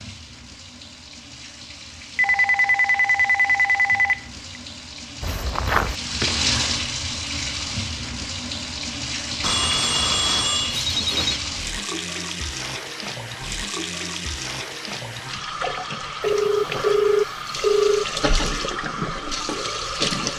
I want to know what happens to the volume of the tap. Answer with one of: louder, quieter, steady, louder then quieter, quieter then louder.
louder.